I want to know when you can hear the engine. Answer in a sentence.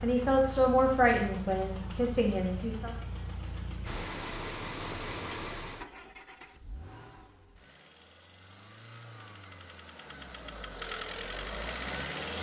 The engine can be heard from 0.0 to 12.3 s.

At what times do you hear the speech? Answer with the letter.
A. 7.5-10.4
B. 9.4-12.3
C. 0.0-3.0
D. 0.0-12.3
C.